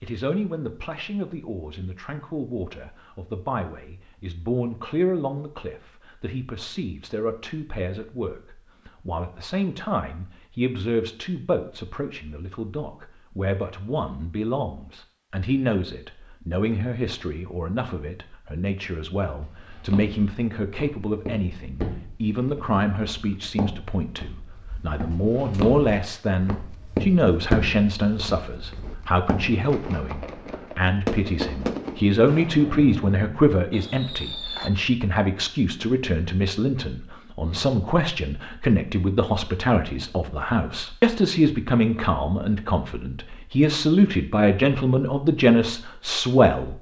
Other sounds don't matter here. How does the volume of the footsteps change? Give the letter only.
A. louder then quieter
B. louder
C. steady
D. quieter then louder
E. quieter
A.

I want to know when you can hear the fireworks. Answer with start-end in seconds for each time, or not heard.
28.8-34.7.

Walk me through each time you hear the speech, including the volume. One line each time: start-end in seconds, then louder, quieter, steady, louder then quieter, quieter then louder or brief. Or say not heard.
0.0-46.7 louder.